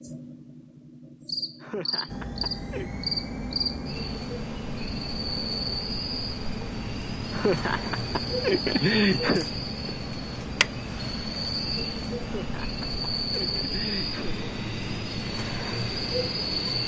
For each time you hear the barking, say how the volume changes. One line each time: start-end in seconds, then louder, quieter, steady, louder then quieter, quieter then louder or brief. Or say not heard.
not heard.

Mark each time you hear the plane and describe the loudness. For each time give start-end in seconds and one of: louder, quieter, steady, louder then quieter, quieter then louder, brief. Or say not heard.
2.0-16.8 steady.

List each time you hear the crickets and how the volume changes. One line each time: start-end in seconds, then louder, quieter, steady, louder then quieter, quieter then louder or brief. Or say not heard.
0.0-16.8 steady.